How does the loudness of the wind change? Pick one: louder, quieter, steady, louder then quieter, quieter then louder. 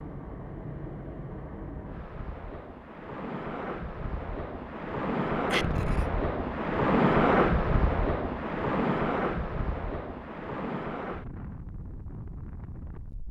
louder then quieter.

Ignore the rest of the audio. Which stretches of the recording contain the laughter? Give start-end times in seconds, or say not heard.
5.5-6.0.